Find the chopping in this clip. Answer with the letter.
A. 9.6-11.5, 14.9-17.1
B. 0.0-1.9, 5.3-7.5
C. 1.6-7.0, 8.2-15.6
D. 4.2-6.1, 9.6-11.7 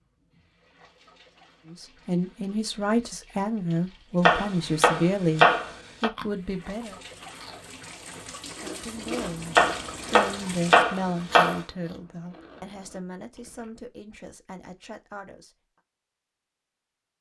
D.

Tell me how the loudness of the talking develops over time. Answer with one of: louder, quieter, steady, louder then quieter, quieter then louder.
quieter.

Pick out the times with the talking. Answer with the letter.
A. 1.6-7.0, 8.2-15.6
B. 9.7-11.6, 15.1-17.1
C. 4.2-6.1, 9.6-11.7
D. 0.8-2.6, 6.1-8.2
A.